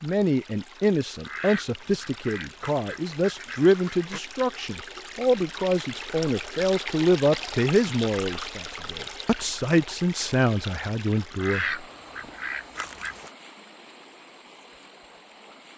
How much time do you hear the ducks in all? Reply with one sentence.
You can hear the ducks for 5 seconds altogether.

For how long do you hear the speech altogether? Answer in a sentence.
The speech can be heard for 12 seconds in total.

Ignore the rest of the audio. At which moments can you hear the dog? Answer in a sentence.
You can't hear the dog here.